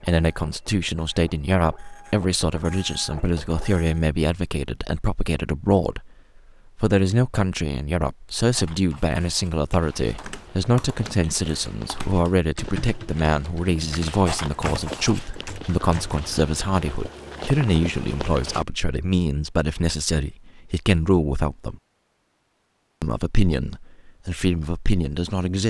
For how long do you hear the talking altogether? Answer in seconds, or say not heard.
24 s.